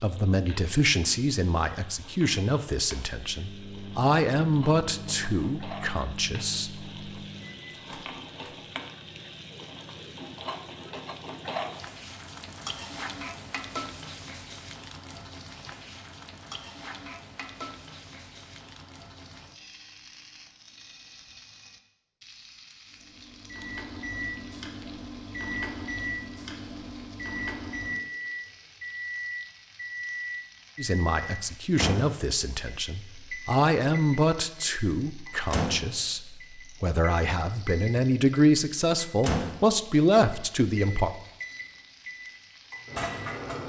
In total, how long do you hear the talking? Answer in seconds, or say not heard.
17 s.